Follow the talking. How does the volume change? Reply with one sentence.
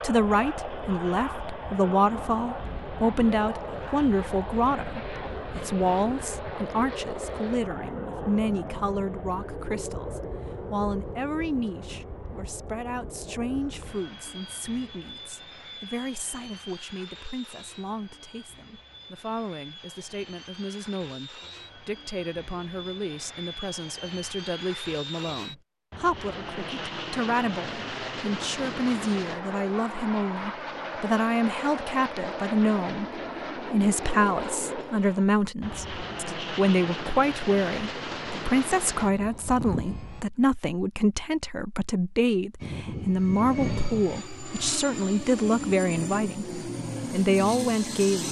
The volume of the talking goes down, then up.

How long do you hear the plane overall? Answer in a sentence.
You can hear the plane for 46 seconds altogether.